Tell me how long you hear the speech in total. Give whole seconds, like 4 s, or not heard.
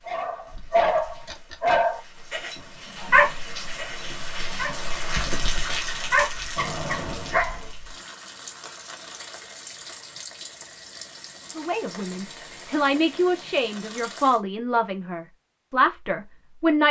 5 s.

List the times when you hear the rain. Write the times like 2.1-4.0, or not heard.
0.0-14.4.